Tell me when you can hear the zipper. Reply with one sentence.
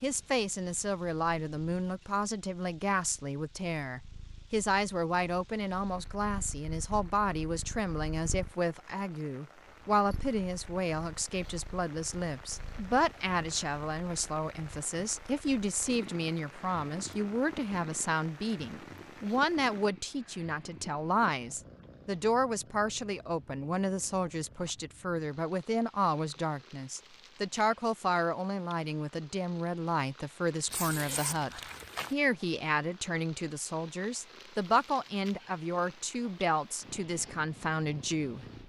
The zipper can be heard from 30.6 to 32.1 s.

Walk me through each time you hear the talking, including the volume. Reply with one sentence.
You can hear the talking from 0.0 to 38.5 s, at a steady volume.